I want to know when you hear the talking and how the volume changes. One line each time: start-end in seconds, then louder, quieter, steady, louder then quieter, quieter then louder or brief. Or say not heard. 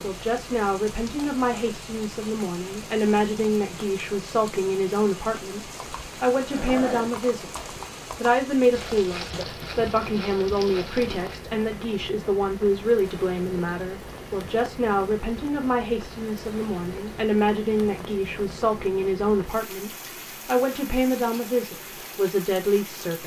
0.0-23.2 steady.